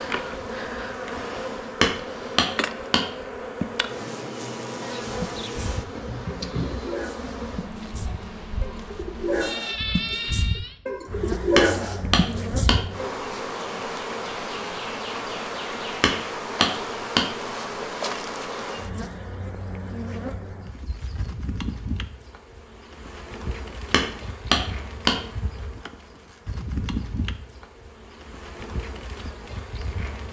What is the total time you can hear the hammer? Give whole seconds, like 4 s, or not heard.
5 s.